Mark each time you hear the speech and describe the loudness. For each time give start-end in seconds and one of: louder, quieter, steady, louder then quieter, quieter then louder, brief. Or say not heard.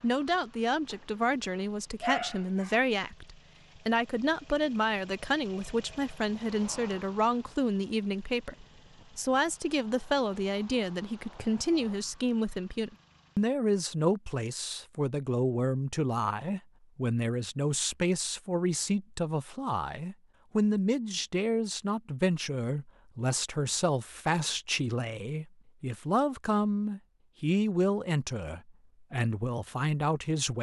0.0-30.5 steady.